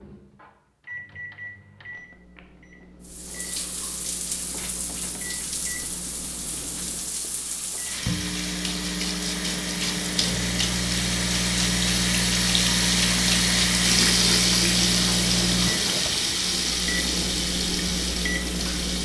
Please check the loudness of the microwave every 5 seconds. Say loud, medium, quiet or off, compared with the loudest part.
quiet, medium, loud, loud.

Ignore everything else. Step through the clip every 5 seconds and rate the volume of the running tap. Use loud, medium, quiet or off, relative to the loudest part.
quiet, medium, loud, loud.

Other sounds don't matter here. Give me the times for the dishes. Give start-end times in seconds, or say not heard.
not heard.